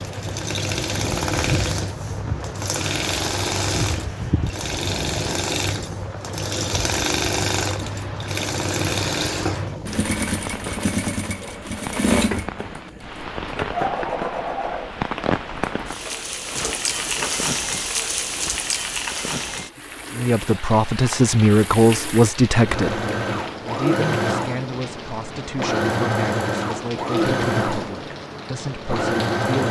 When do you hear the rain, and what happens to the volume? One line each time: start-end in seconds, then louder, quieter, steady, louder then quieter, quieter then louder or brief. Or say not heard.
0.0-29.4 louder then quieter.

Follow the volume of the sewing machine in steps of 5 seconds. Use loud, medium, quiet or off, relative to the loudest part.
loud, loud, loud, quiet, loud, loud.